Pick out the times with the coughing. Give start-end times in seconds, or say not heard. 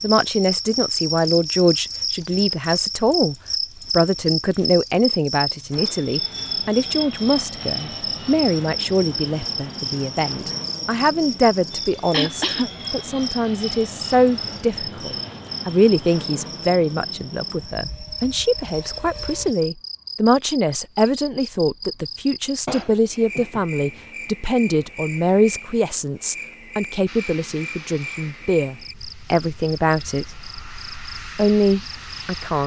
12.1-12.8, 22.6-23.6.